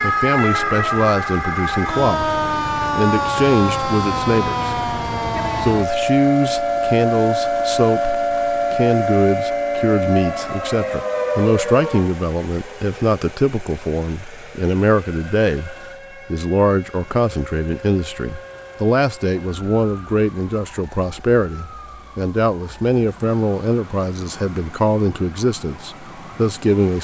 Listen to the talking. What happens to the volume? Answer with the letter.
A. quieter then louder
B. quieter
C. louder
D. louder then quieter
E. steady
E.